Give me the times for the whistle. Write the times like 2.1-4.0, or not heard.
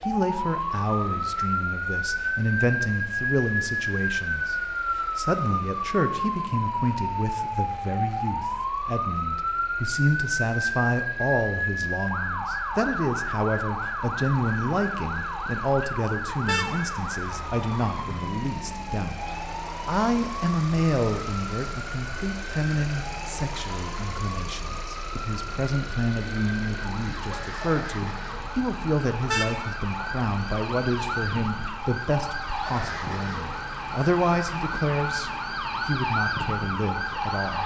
not heard.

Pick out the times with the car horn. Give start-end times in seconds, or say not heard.
16.4-16.9, 29.2-29.7.